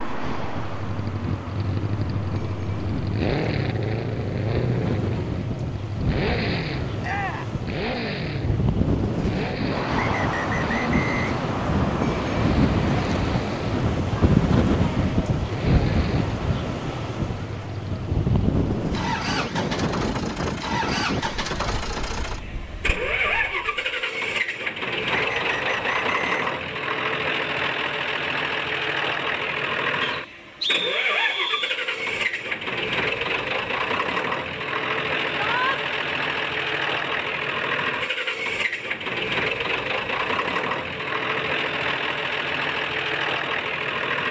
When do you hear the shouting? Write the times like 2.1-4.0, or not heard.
7.0-7.5, 35.4-35.8.